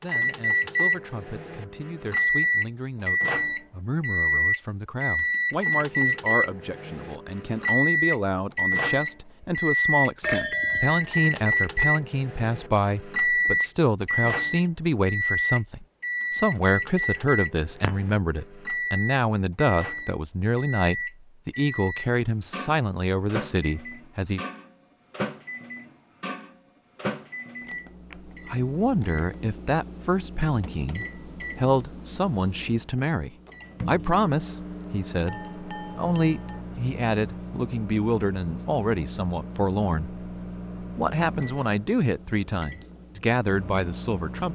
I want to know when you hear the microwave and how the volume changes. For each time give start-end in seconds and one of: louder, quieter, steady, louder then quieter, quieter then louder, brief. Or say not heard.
0.0-44.4 quieter.